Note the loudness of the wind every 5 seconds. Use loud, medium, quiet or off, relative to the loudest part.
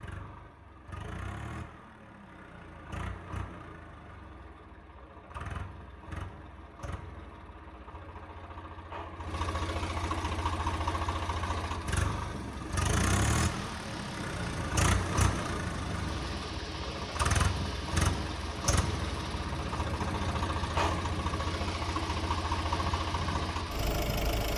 off, off, loud, loud, loud.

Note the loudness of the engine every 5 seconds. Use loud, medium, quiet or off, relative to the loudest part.
quiet, medium, loud, loud, loud.